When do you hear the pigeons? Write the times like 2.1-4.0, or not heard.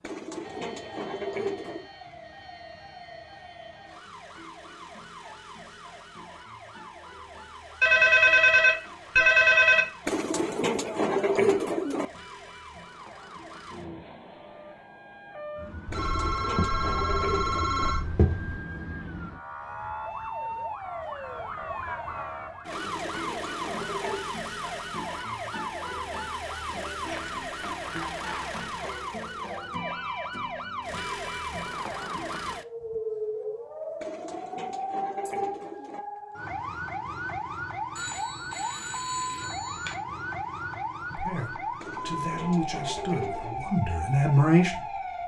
0.0-1.9, 10.1-12.1, 15.9-17.9, 22.7-24.4, 34.0-36.0, 41.8-43.7.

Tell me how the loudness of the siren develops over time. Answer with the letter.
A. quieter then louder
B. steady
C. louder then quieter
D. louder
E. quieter
D.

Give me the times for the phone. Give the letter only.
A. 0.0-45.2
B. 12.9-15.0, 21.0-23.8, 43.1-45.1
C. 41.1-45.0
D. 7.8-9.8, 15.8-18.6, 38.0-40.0
D.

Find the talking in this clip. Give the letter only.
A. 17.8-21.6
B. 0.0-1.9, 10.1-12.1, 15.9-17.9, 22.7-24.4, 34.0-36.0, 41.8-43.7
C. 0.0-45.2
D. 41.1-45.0
D.